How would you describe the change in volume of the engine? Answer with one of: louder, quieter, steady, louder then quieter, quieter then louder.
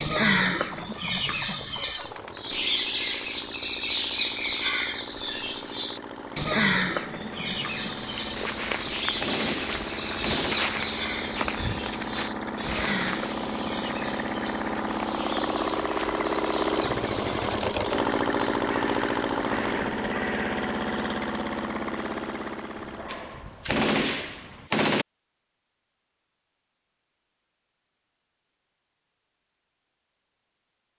louder.